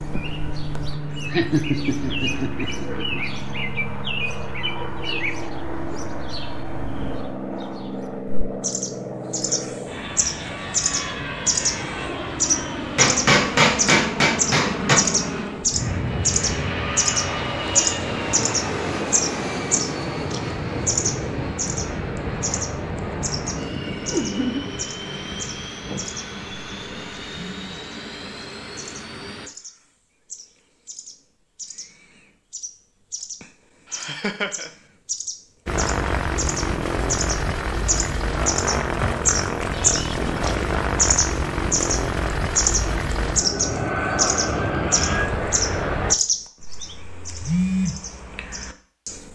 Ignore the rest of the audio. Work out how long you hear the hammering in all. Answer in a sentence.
You can hear the hammering for 2 seconds altogether.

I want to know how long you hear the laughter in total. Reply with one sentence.
You can hear the laughter for 3 seconds altogether.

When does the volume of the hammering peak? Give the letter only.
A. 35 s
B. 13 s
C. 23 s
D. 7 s
B.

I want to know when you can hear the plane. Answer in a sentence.
The plane can be heard from 0.0 to 29.5 s and from 35.6 to 46.1 s.